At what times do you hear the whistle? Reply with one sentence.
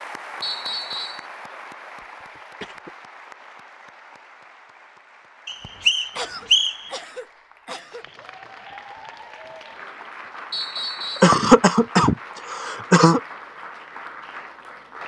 The whistle can be heard from 0.4 to 1.2 s, from 5.5 to 6.8 s and from 10.5 to 11.3 s.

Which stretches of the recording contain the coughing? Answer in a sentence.
The coughing can be heard from 2.0 to 2.9 s, from 6.2 to 8.1 s and from 11.2 to 13.2 s.